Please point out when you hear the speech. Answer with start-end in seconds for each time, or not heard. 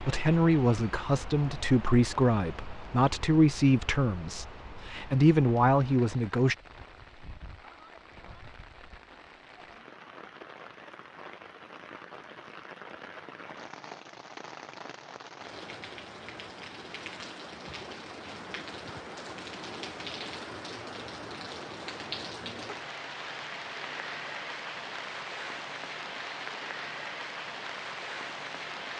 0.0-6.5.